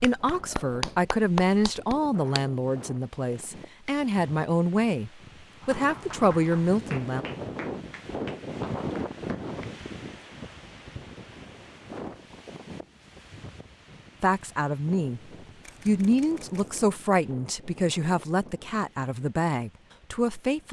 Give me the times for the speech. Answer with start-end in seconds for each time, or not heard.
0.0-7.2, 14.2-15.2, 15.8-20.6.